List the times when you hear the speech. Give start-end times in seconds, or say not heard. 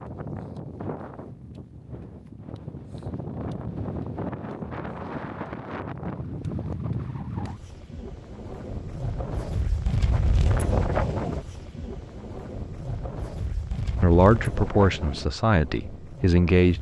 14.0-16.7.